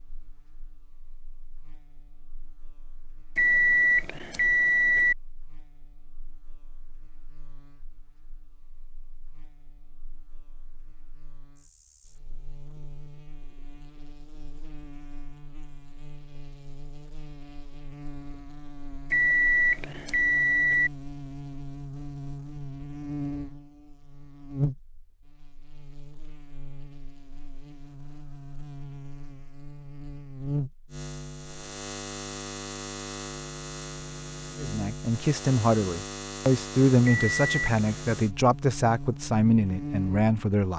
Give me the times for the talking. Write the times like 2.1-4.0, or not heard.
34.5-40.7.